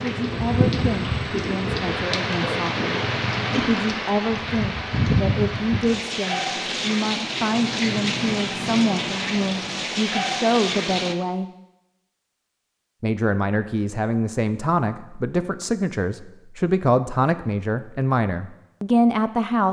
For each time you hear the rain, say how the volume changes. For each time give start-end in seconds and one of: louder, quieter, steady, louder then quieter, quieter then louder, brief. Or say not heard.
0.0-11.2 steady.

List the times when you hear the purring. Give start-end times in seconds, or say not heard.
0.0-4.0.